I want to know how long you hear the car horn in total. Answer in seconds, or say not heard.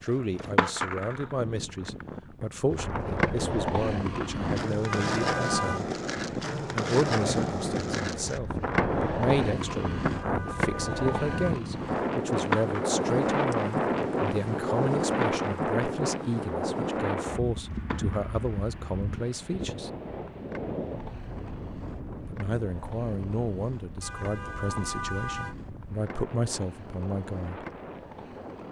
4 s.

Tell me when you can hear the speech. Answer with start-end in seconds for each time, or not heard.
0.0-5.8, 6.7-19.9, 22.2-27.6.